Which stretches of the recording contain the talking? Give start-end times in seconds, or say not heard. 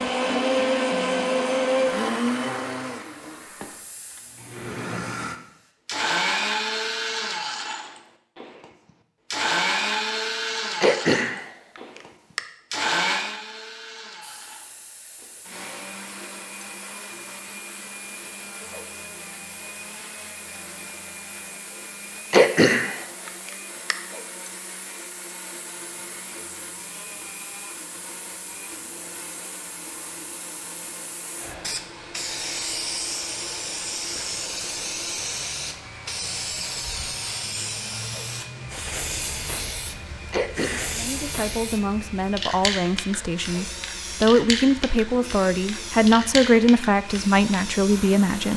41.0-48.5.